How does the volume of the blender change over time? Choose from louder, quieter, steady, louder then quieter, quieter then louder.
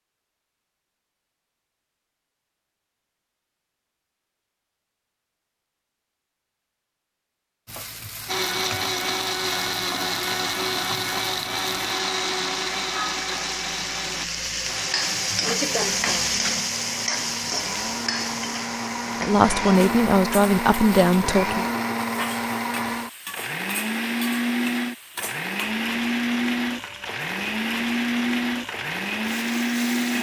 quieter then louder.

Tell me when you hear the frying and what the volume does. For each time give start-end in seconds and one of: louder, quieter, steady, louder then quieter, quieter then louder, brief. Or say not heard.
7.7-30.1 louder then quieter.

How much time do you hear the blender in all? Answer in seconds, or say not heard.
22 s.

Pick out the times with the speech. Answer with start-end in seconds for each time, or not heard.
19.2-21.6.